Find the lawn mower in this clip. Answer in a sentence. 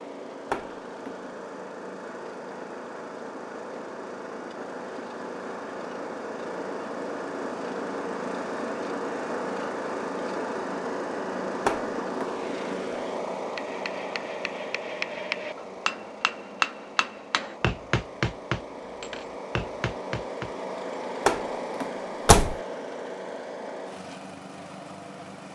The lawn mower can be heard from 0.0 to 25.5 s.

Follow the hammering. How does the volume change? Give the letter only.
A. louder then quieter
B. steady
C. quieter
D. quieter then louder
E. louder
A.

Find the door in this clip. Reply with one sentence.
You can hear the door from 0.5 to 1.1 s, from 11.7 to 12.3 s and from 21.2 to 22.6 s.